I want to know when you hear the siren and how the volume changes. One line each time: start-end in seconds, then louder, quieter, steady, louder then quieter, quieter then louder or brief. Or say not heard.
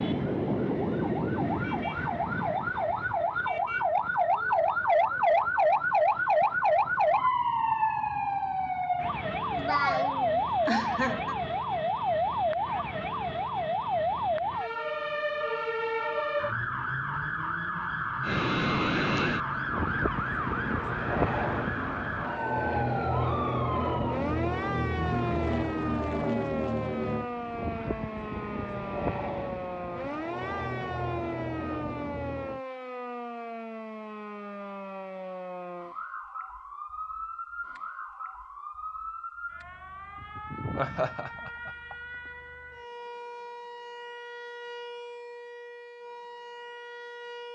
0.0-47.5 quieter.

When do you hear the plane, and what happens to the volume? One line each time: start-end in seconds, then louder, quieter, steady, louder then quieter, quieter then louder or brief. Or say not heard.
18.2-32.6 quieter.